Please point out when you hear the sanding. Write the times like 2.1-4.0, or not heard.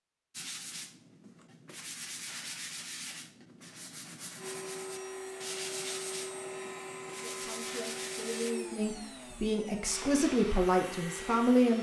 0.3-8.6.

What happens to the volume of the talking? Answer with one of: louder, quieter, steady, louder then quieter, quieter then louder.
louder.